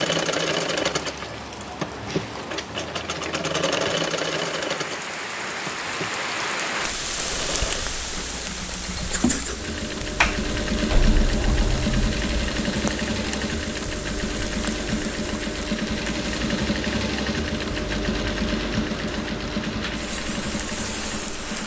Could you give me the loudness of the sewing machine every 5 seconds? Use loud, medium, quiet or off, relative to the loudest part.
loud, medium, loud, loud, medium.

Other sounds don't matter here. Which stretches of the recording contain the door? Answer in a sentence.
The door can be heard from 10.2 to 12.6 s.